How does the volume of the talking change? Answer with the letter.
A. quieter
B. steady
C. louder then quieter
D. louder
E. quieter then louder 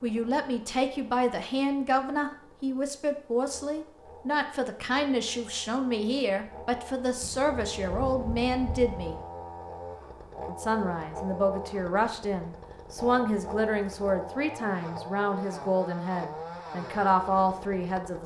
B.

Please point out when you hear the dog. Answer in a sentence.
The dog can't be heard in this clip.